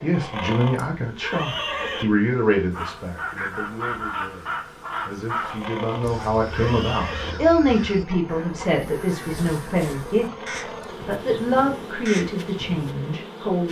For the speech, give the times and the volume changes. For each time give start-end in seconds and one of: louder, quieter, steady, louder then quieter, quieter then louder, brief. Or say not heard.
0.0-13.6 quieter then louder.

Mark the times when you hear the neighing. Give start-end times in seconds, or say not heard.
0.1-2.0, 5.4-7.3, 10.2-10.9.